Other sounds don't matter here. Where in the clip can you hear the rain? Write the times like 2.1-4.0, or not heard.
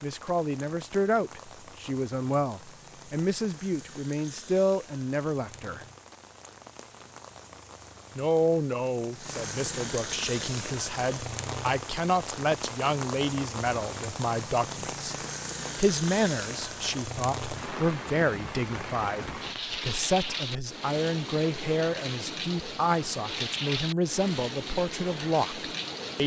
0.0-26.2.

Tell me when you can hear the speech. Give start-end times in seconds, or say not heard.
0.0-5.8, 8.2-15.2, 15.8-26.2.